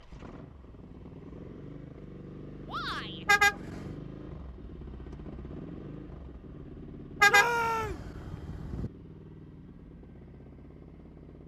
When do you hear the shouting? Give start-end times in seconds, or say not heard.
2.6-3.2, 7.2-8.0.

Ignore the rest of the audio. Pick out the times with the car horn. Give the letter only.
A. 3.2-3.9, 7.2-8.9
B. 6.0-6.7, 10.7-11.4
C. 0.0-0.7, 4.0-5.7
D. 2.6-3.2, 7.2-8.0
A.